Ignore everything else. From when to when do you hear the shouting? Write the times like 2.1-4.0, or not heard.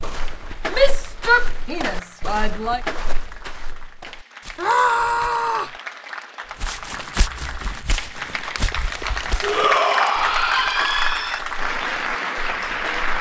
0.7-2.8, 4.5-5.8, 9.4-11.4.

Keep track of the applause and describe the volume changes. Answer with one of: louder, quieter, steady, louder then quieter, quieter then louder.
louder.